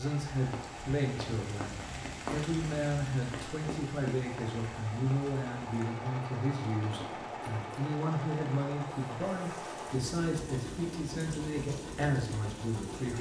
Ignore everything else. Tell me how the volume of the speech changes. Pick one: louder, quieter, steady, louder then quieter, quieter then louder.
steady.